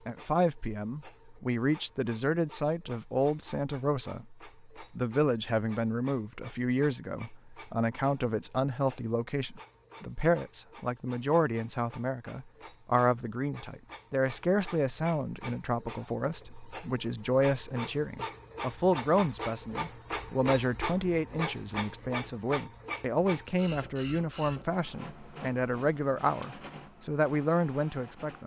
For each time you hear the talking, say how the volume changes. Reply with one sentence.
You can hear the talking from 0.1 to 28.4 s, at a steady volume.